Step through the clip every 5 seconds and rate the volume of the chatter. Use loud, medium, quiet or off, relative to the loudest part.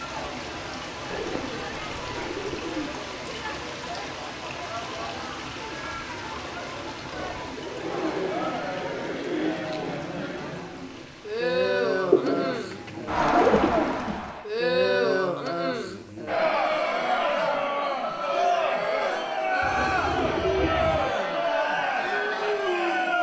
quiet, medium, loud, loud, loud.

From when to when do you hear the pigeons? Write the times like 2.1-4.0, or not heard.
1.1-2.9, 7.3-10.0, 12.1-14.0, 19.6-21.1.